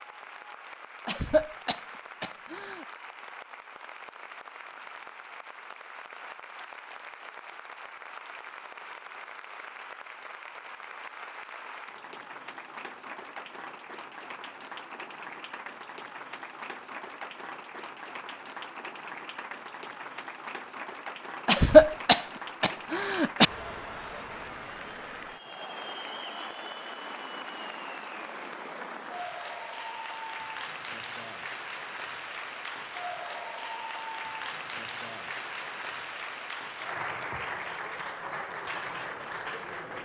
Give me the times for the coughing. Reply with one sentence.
You can hear the coughing from 1.1 to 2.9 s and from 21.4 to 23.4 s.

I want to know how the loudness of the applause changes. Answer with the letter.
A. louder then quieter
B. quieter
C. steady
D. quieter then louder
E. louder
E.